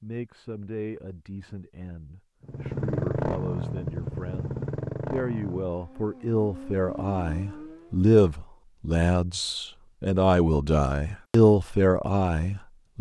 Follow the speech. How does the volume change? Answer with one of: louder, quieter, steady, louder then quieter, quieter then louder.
louder.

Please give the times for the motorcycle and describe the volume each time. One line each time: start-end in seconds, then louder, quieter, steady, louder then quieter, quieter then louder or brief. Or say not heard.
2.4-8.0 quieter then louder.